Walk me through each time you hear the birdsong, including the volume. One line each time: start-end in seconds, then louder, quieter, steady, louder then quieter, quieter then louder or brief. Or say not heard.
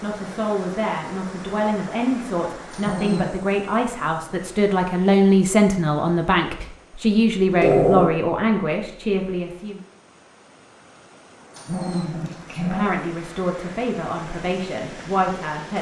not heard.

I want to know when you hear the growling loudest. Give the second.
8 s.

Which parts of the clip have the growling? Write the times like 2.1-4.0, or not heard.
2.7-3.4, 7.5-8.2, 11.6-13.0.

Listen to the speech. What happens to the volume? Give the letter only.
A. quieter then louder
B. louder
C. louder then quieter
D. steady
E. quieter
C.